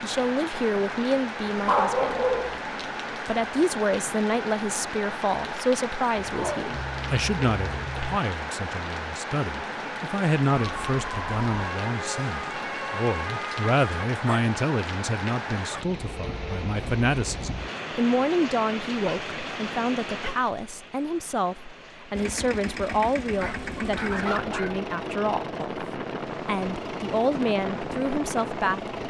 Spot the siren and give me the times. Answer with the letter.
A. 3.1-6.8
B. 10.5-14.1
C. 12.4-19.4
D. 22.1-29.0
B.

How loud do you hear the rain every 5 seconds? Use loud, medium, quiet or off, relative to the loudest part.
loud, loud, loud, loud, medium, quiet.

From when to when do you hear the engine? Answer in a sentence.
The engine can be heard from 22.1 to 29.0 s.